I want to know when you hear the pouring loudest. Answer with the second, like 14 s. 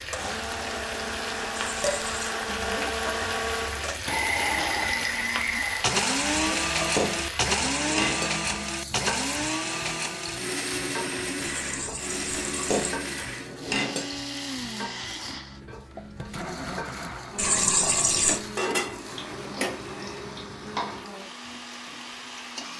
18 s.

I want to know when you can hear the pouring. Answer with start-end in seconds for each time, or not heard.
1.6-2.4, 11.4-12.9, 17.4-18.4.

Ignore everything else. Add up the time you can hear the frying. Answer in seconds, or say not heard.
23 s.